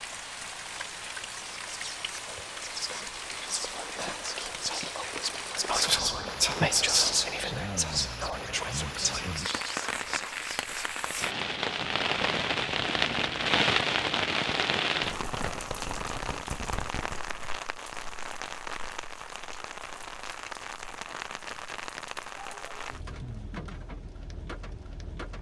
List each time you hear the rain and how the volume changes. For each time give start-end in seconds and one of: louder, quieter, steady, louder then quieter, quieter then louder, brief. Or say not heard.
0.0-25.3 louder then quieter.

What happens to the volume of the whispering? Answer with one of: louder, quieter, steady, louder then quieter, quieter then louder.
louder then quieter.